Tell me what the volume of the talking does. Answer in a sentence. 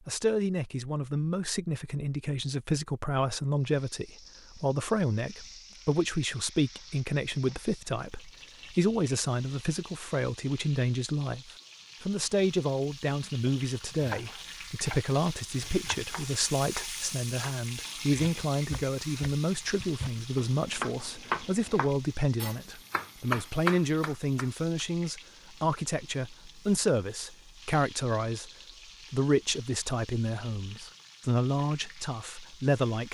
The loudness of the talking stays about the same.